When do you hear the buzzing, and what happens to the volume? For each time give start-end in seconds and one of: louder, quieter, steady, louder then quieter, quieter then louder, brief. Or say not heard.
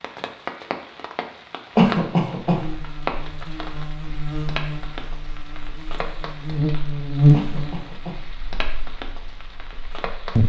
2.5-10.4 louder then quieter.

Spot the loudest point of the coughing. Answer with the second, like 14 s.
2 s.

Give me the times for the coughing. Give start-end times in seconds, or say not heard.
1.8-2.6, 7.3-8.2.